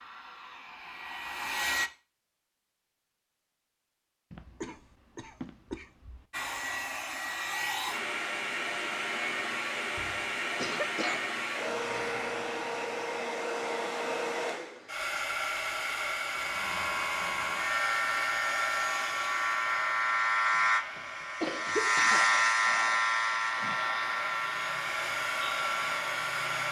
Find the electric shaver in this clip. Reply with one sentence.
The electric shaver can be heard from 16.2 to 26.6 s.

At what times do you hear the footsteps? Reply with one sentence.
You can't hear the footsteps here.